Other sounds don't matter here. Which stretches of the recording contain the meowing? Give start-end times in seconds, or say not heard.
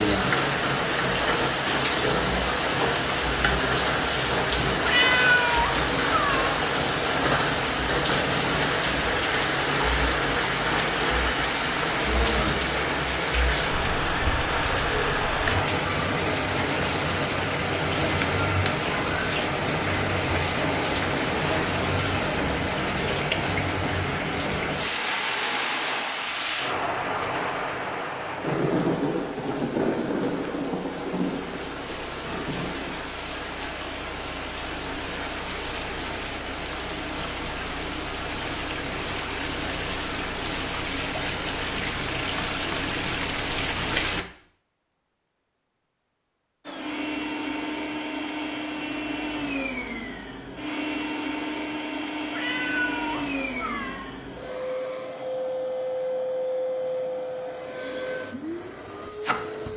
4.8-6.5, 52.3-54.0.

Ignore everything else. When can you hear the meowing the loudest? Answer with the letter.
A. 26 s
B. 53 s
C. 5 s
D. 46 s
C.